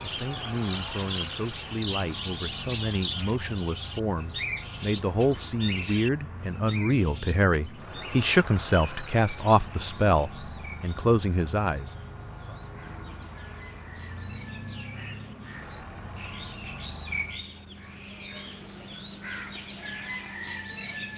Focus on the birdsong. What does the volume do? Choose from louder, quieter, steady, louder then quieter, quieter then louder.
quieter then louder.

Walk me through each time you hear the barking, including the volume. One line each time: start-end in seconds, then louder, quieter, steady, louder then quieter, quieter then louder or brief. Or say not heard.
not heard.